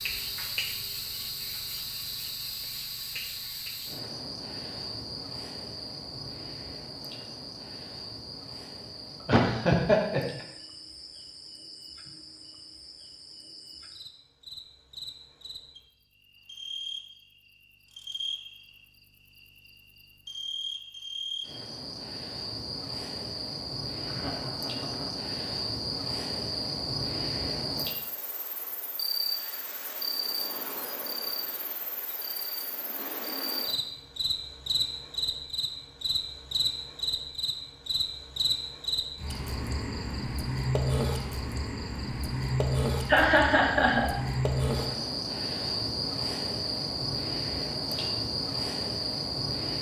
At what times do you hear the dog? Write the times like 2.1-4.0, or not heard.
not heard.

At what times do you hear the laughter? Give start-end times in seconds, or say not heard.
9.2-10.4, 24.0-25.1, 43.0-44.1.